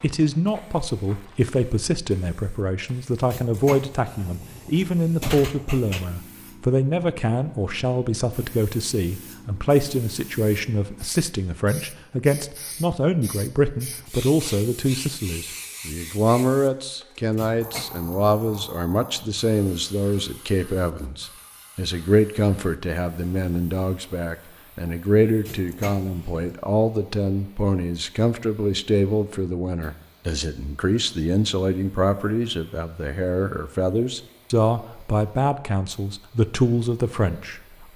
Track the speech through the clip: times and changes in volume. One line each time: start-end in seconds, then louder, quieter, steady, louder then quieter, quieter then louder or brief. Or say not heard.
0.0-37.9 steady.